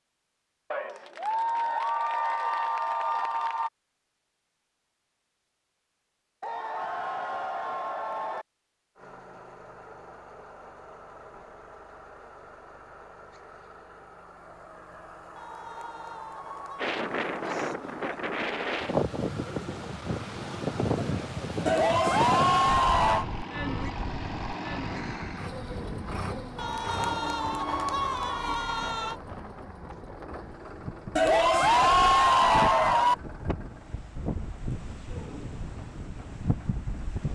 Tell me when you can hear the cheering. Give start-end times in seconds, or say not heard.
0.7-3.7, 6.4-8.4, 15.3-16.9, 21.6-23.2, 26.6-29.1, 31.1-33.1.